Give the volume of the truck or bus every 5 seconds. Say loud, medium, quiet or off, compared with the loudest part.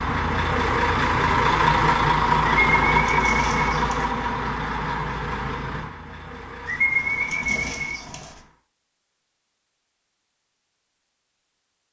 loud, quiet, off.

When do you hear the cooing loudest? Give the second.
7 s.